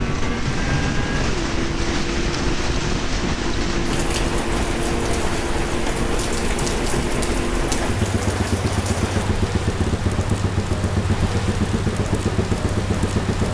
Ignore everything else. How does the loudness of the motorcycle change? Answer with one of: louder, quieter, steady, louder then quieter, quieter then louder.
steady.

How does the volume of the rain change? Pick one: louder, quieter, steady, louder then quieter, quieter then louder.
steady.